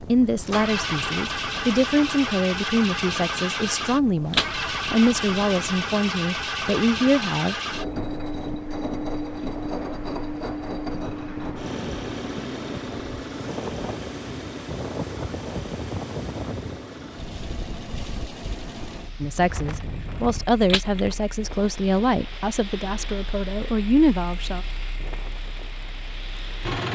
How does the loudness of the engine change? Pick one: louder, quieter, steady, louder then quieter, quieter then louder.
quieter.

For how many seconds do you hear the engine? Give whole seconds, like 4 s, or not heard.
27 s.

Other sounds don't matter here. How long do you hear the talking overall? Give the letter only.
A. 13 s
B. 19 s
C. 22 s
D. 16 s
A.